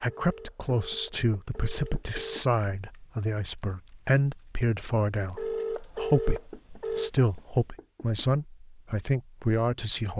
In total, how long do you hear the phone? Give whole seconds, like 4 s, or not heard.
4 s.